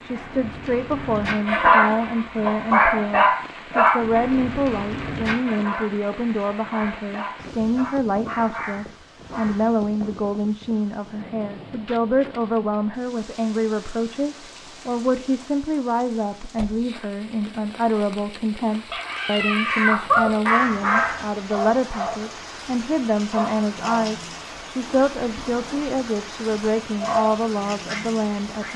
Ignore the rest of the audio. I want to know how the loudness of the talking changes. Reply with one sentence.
The loudness of the talking stays about the same.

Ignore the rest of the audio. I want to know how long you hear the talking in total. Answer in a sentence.
You can hear the talking for 29 seconds altogether.